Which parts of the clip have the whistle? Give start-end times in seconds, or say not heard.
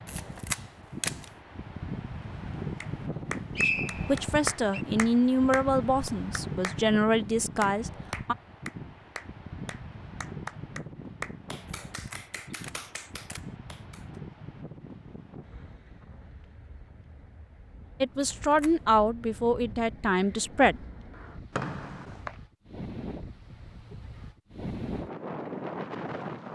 3.5-4.8, 21.6-22.4.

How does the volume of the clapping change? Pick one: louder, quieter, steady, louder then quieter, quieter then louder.
quieter.